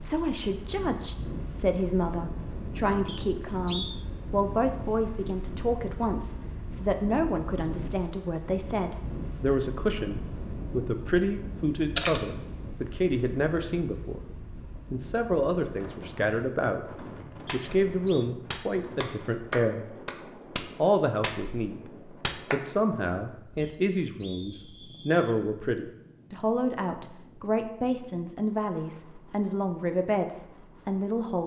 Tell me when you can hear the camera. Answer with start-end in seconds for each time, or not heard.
11.9-12.6.